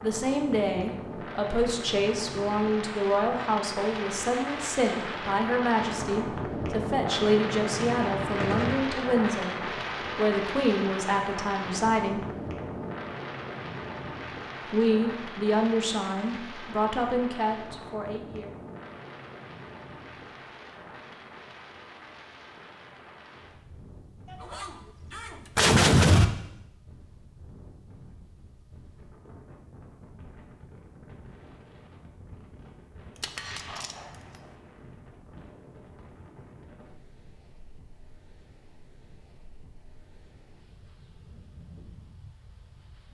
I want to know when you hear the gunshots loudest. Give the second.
26 s.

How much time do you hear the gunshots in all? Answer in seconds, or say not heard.
4 s.